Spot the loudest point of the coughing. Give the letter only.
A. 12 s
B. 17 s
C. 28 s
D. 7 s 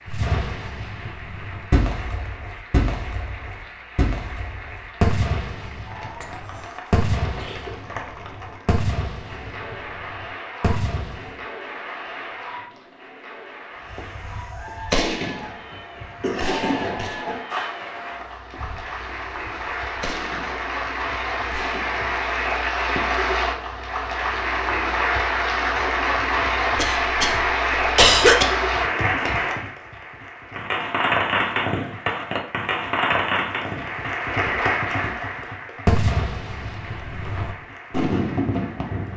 C.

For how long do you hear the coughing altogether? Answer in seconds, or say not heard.
5 s.